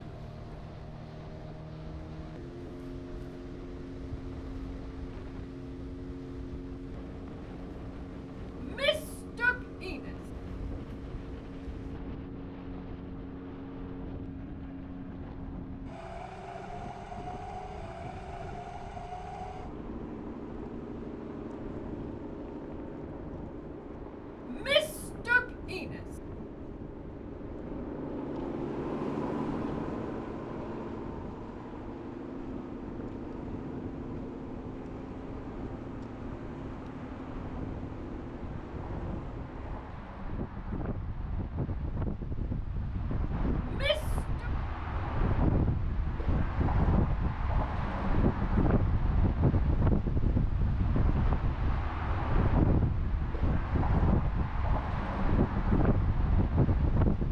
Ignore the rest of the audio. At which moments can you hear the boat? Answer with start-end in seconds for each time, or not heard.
0.0-40.1.